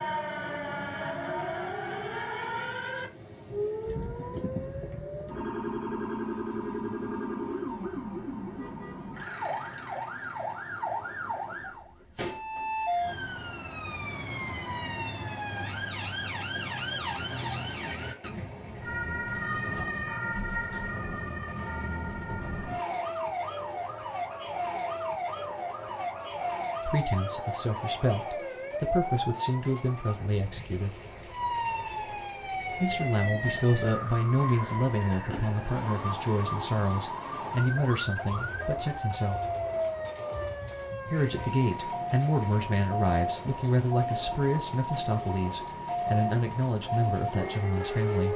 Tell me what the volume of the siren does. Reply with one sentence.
The loudness of the siren stays about the same.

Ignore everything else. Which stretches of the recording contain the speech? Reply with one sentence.
The speech can be heard from 26.9 to 30.9 s, from 32.8 to 39.4 s and from 41.0 to 48.3 s.